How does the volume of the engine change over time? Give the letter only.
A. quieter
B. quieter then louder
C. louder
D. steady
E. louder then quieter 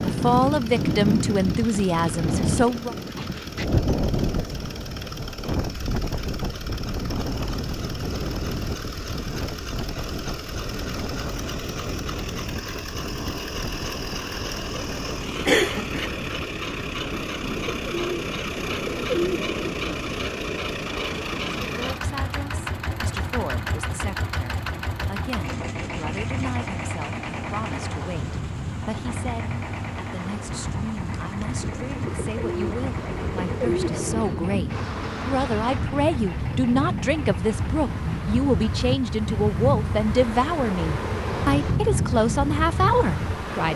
E.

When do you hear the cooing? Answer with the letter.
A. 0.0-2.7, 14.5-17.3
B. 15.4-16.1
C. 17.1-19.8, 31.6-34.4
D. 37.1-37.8
C.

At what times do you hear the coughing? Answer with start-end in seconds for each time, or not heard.
15.4-16.1.